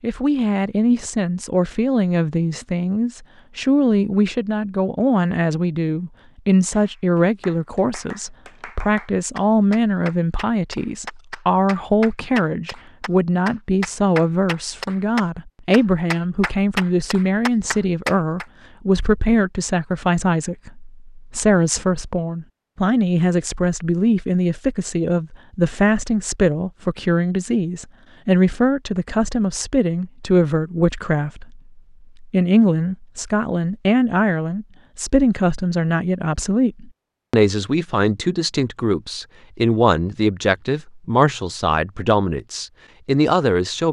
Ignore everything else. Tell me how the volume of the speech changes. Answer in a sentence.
The loudness of the speech stays about the same.